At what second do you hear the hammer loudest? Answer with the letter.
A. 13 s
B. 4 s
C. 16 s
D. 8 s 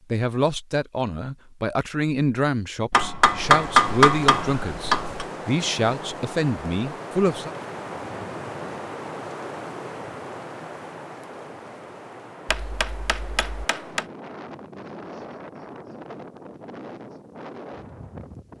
B.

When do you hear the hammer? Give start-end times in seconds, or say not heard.
2.9-5.2, 12.4-14.1.